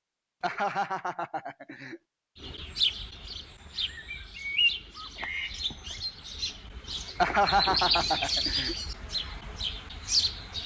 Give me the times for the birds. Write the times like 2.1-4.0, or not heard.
2.4-10.6.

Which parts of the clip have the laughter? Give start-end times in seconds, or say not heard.
0.4-2.0, 7.2-8.8.